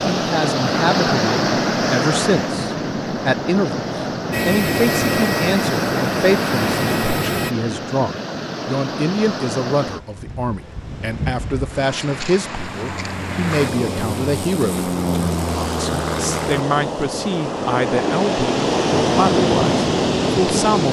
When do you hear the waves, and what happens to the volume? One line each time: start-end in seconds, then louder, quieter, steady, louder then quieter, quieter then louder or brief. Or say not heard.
0.0-20.8 quieter then louder.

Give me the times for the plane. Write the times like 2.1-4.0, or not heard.
4.3-7.5, 12.8-16.6.